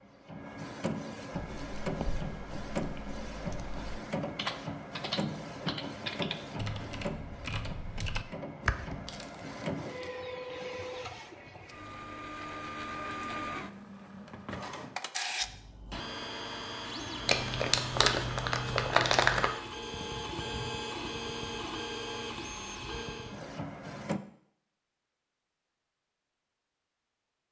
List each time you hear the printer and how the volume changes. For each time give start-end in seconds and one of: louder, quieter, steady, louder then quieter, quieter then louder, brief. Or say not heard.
0.0-24.2 steady.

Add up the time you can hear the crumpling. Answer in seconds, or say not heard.
3 s.